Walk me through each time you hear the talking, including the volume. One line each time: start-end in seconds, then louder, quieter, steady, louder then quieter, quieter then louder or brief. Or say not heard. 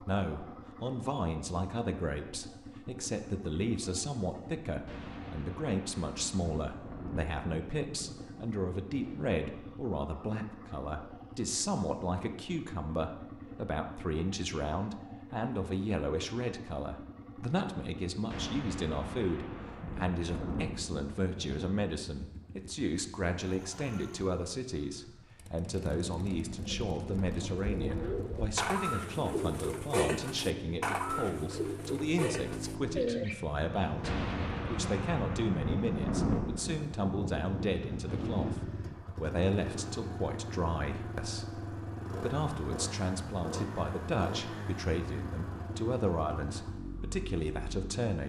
0.0-48.2 steady.